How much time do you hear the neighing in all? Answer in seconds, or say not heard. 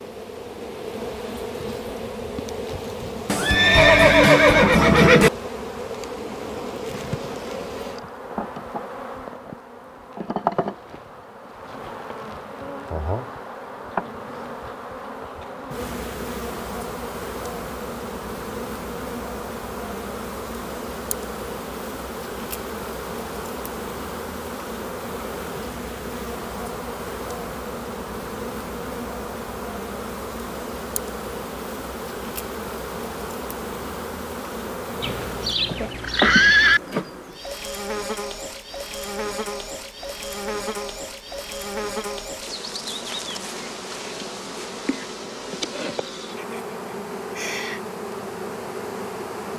4 s.